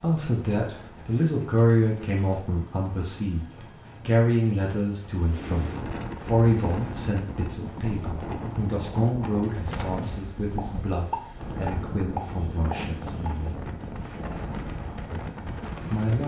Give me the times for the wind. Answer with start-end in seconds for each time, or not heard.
5.3-16.2.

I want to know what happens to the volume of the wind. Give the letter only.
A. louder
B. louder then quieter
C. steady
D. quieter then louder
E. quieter
C.